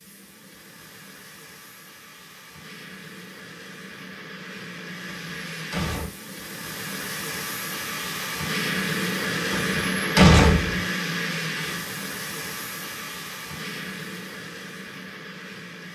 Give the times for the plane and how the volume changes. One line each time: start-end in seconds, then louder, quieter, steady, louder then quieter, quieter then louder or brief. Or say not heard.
0.0-15.8 louder then quieter.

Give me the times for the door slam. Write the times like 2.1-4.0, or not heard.
5.0-6.1, 9.5-10.8.